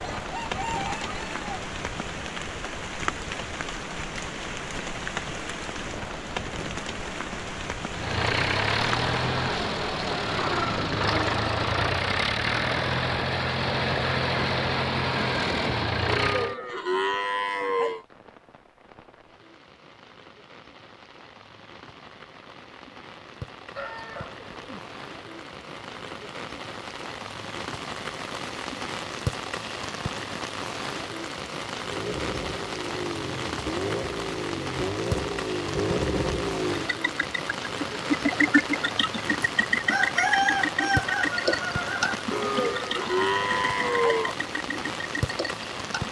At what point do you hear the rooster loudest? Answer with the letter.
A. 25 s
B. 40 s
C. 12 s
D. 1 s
B.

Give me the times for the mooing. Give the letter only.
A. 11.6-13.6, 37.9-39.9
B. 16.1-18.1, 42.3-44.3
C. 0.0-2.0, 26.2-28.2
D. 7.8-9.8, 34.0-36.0
B.